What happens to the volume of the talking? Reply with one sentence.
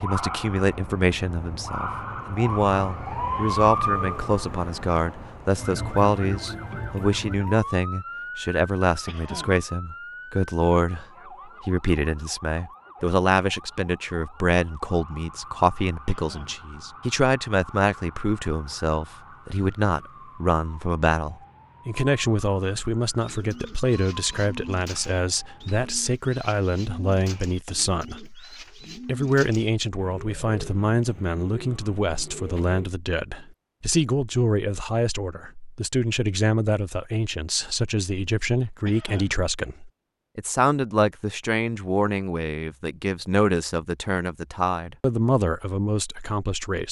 The loudness of the talking stays about the same.